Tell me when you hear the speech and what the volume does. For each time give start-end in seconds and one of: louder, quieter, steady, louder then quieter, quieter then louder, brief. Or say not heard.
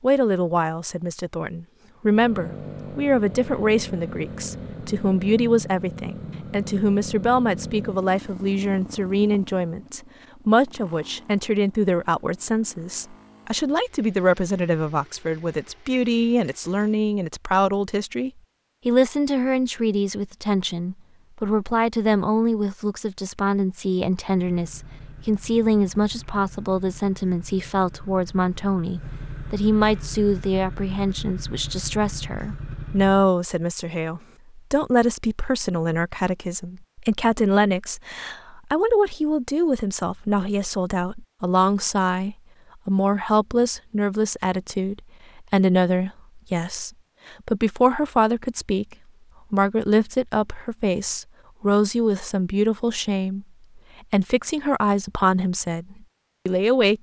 0.0-56.9 steady.